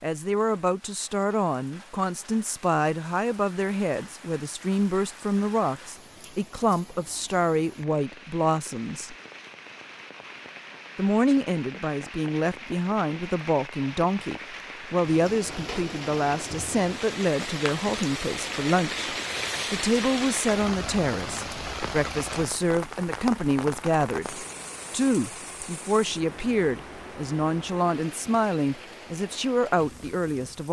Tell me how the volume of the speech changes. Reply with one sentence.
The volume of the speech stays about the same.